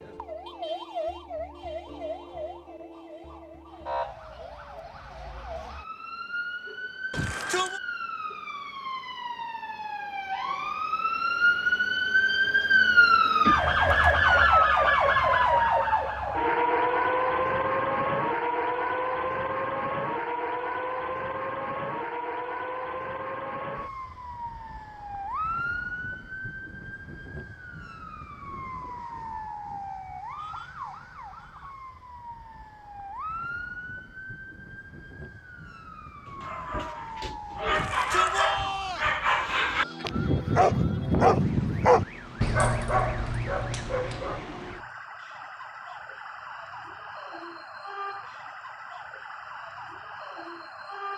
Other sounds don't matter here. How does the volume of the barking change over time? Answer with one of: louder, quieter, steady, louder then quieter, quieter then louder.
louder then quieter.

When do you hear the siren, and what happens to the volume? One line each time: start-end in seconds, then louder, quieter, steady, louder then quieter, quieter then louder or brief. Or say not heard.
0.0-51.1 louder then quieter.